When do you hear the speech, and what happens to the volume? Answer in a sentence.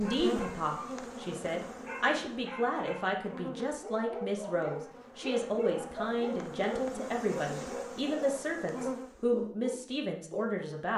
The speech can be heard from 0.0 to 10.9 s, at a steady volume.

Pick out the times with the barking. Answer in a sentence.
You can hear the barking from 0.0 to 10.7 s.